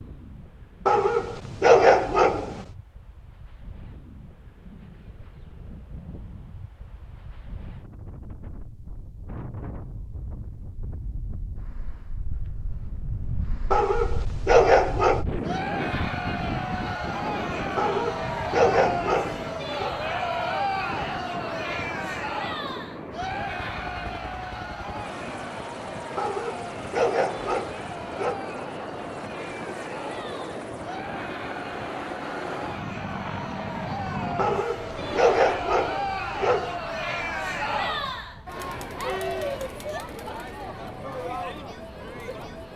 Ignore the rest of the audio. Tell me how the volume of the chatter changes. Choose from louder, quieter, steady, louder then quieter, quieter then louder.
quieter then louder.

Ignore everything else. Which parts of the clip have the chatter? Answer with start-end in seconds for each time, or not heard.
15.4-42.7.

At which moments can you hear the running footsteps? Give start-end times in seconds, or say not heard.
not heard.